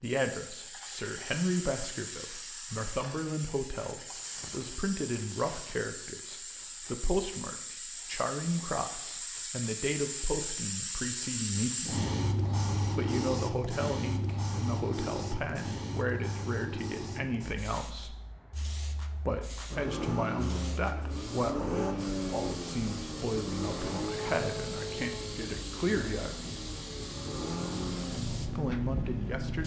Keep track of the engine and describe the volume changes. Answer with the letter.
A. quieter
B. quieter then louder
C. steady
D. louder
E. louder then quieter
B.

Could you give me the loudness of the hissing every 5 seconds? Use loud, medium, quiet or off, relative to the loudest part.
medium, medium, loud, medium, medium, medium.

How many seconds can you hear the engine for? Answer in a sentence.
You can hear the engine for 10 seconds altogether.